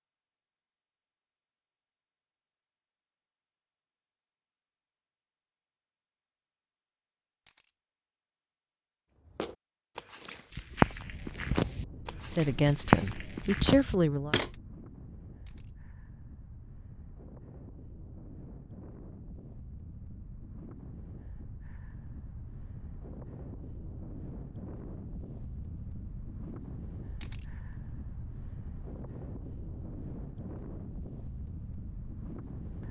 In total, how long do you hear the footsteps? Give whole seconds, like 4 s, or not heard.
5 s.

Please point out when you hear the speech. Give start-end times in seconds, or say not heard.
12.2-14.3.